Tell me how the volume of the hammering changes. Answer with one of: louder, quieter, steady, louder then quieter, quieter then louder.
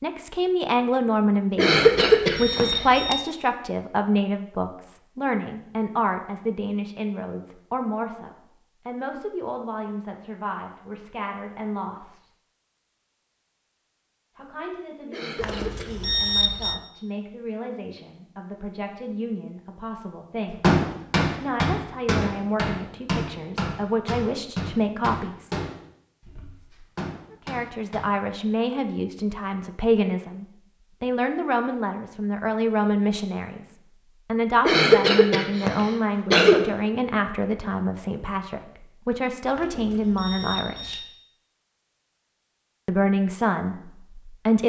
quieter.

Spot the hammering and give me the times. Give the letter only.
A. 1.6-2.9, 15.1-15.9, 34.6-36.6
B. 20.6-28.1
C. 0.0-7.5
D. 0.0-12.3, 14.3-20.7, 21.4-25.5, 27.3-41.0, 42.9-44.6
B.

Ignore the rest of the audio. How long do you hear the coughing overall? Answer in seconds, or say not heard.
4 s.